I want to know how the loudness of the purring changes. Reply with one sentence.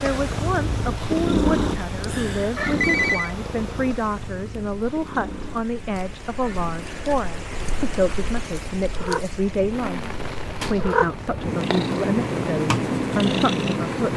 The loudness of the purring goes down, then up.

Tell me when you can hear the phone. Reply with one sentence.
You can hear the phone from 2.0 to 3.4 s.